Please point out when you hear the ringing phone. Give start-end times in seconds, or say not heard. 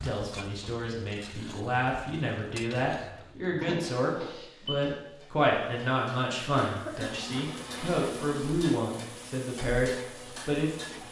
3.5-4.8.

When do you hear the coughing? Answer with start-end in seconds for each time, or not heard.
6.6-7.2.